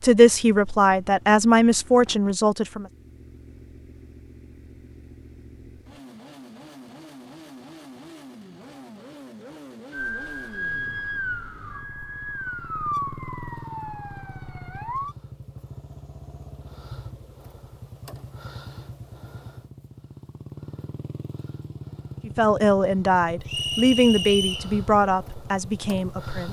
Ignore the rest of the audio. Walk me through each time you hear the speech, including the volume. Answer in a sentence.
You can hear the speech briefly from 0.0 to 2.9 s; and from 22.2 to 26.4 s, getting quieter.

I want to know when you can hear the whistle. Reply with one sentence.
You can hear the whistle from 23.4 to 24.7 s.